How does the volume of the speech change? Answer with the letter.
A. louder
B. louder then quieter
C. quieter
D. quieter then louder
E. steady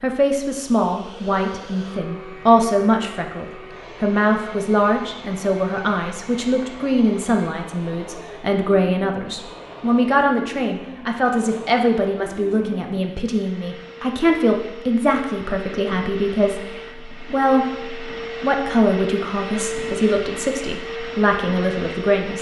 E.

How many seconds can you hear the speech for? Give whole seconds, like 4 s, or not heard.
22 s.